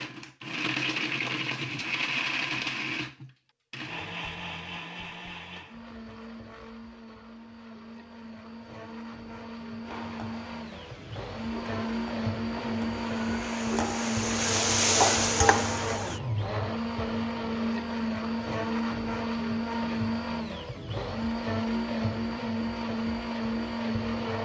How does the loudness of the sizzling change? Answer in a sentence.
The loudness of the sizzling goes up.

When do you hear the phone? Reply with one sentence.
The phone can't be heard in this clip.